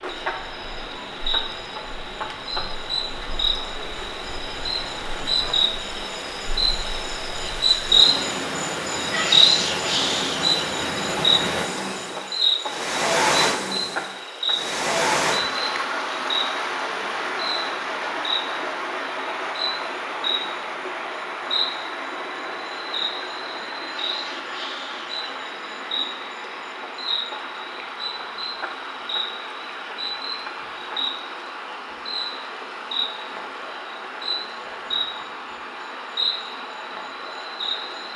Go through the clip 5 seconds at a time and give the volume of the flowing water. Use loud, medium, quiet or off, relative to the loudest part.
quiet, medium, loud, loud, medium, medium, medium, medium.